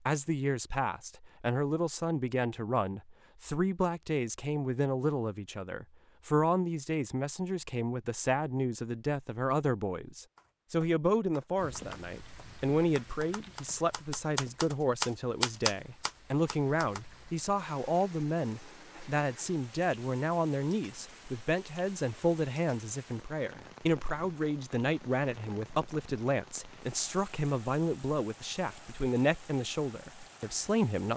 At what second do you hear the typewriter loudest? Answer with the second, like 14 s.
16 s.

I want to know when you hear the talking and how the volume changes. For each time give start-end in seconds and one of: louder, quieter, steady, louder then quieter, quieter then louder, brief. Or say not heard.
0.1-31.1 steady.